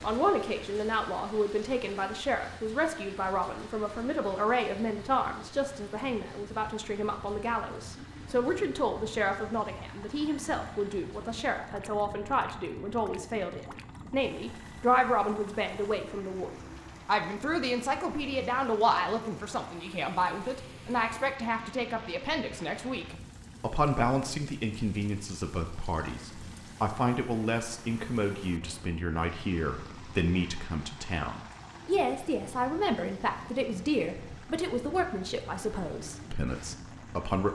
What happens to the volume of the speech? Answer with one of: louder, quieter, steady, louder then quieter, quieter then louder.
steady.